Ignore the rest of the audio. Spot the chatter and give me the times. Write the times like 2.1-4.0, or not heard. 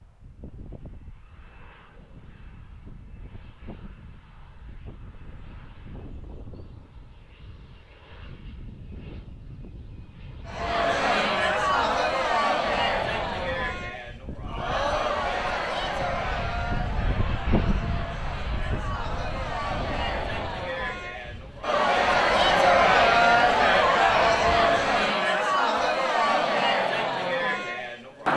10.4-28.3.